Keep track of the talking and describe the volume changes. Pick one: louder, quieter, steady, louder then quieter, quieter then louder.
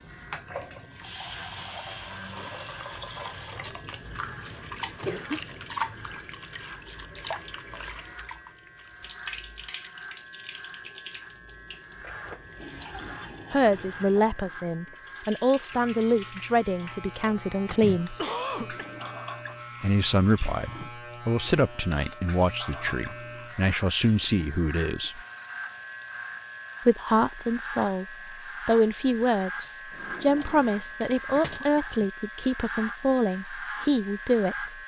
steady.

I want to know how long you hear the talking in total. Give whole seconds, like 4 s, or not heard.
18 s.